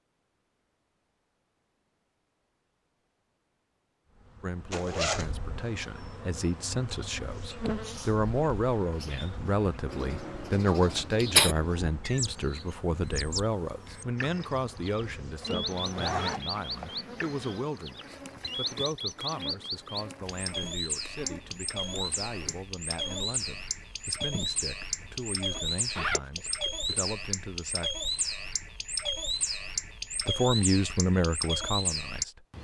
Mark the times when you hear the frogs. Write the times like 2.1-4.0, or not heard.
not heard.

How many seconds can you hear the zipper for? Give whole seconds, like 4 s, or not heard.
4 s.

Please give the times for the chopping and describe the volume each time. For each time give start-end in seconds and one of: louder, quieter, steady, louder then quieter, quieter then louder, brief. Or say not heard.
not heard.